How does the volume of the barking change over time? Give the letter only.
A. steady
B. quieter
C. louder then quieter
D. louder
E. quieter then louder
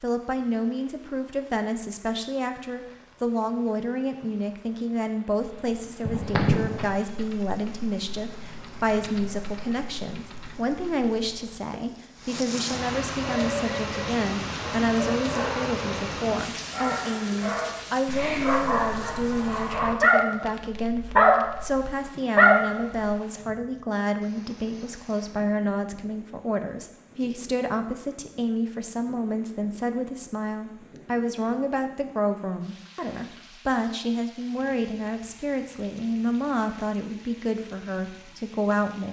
D.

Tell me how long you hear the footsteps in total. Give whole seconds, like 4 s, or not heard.
not heard.